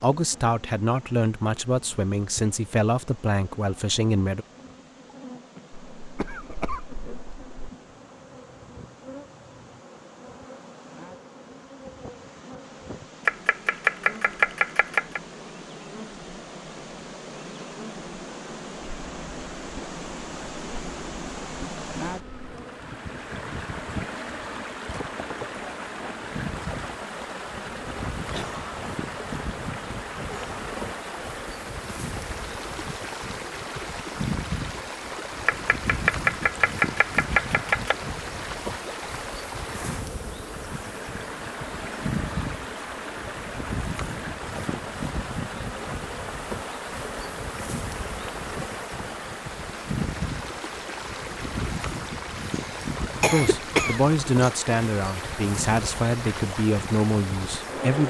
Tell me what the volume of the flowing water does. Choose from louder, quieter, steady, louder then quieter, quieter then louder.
louder.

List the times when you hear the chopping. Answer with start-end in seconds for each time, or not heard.
13.2-15.2, 35.5-38.0.